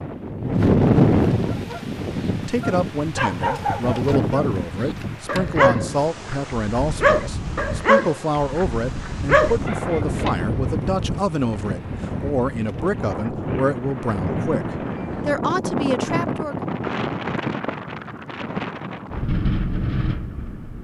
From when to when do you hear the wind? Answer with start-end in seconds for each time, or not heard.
0.0-20.7.